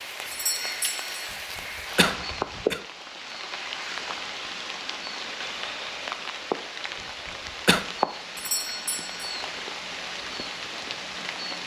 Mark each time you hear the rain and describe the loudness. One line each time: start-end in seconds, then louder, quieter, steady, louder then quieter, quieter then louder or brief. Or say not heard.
0.0-11.6 steady.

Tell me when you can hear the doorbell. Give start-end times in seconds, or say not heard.
0.3-1.4, 8.3-9.3.